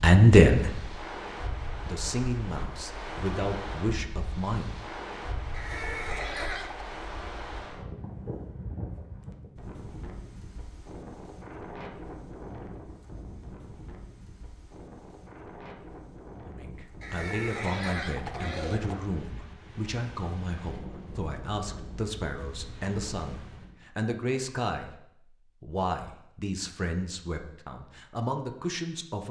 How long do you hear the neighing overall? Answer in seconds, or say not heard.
3 s.